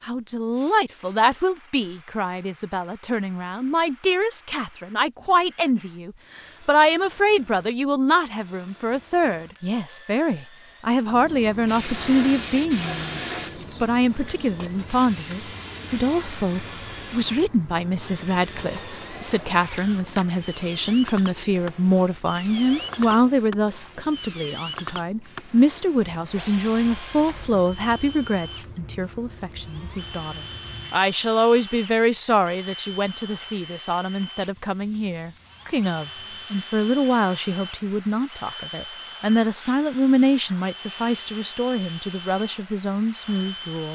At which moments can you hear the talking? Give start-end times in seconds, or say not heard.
0.0-13.2, 13.8-43.8.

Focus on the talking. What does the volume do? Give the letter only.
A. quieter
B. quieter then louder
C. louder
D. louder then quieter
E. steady
E.